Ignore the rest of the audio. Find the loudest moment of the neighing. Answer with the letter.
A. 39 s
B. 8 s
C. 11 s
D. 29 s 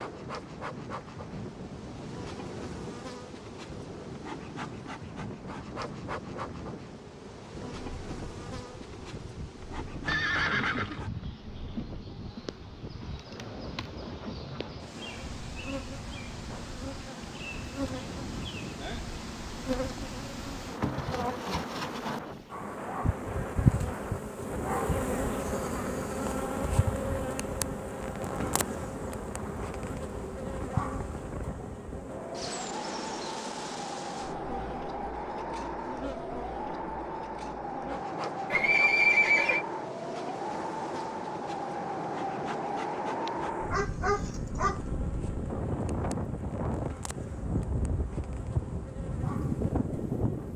A.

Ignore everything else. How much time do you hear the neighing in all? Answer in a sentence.
The neighing can be heard for 2 seconds in total.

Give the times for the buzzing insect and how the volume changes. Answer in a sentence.
You can hear the buzzing insect from 0.0 to 50.5 s, getting louder then quieter.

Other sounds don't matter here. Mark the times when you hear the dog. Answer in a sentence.
You can hear the dog from 43.2 to 44.8 s.